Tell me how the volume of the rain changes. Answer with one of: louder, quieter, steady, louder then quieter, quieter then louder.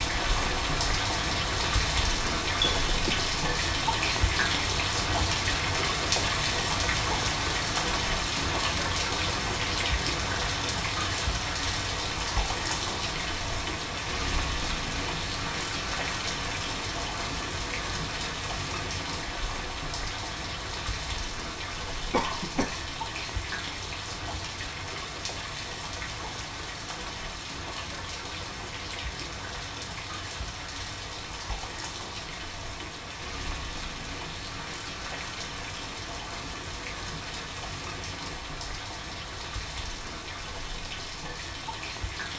quieter.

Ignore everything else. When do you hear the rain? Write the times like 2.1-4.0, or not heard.
0.0-42.3.